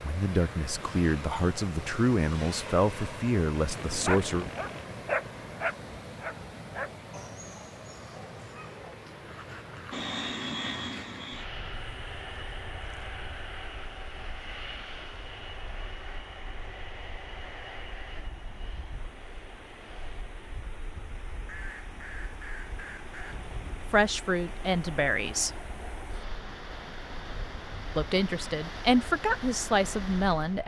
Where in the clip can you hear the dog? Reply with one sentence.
The dog can be heard from 3.7 to 11.2 s.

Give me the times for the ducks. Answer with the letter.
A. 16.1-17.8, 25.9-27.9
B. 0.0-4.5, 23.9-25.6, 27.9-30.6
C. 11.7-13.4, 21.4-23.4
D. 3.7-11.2
C.